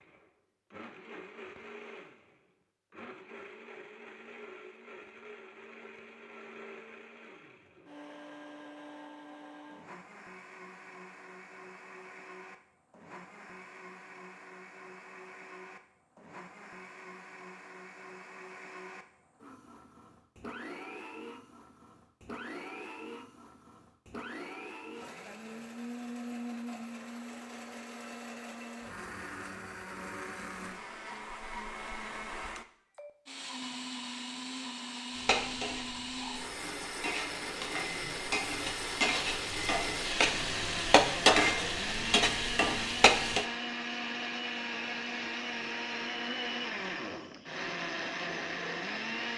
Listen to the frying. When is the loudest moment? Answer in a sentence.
The volume of the frying peaks at 41 seconds.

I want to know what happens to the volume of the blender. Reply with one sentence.
The volume of the blender goes up.